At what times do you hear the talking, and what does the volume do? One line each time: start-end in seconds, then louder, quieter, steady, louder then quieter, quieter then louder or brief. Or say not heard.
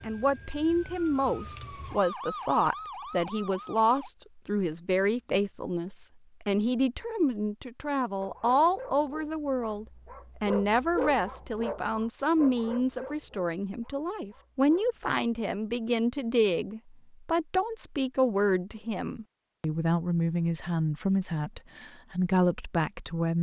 0.0-23.3 steady.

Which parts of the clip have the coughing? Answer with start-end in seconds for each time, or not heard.
not heard.